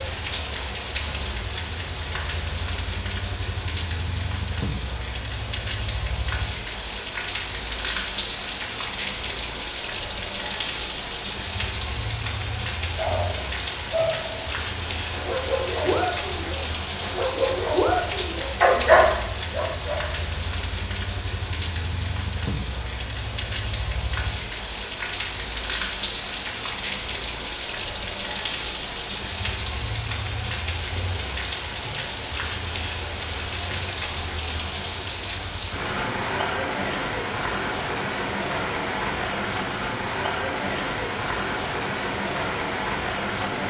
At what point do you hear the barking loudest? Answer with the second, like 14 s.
19 s.